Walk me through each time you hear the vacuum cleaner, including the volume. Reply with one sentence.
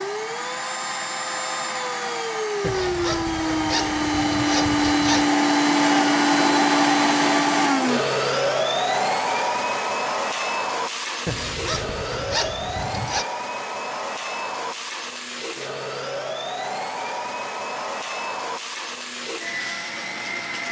You can hear the vacuum cleaner from 0.0 to 20.6 s, getting louder then quieter.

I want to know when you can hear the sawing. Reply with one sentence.
You can hear the sawing from 2.6 to 5.3 s and from 11.2 to 13.2 s.